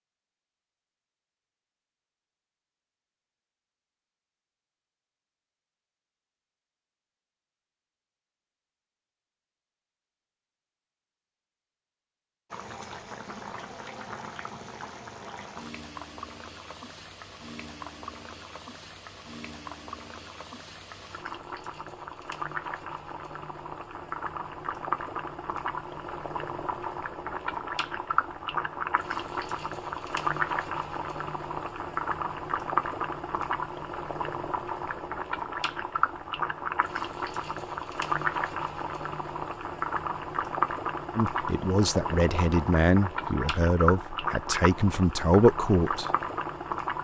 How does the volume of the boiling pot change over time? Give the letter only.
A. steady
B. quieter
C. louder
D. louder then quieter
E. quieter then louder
C.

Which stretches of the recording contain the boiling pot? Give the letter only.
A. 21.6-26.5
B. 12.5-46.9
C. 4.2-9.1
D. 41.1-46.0
B.